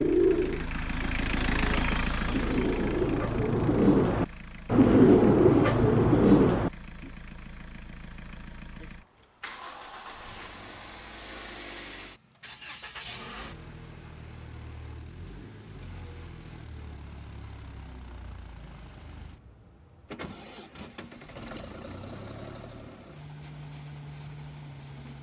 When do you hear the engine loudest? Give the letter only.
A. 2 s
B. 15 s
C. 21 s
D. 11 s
A.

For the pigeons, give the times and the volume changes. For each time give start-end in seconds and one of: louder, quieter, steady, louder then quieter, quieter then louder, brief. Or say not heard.
0.0-6.7 louder.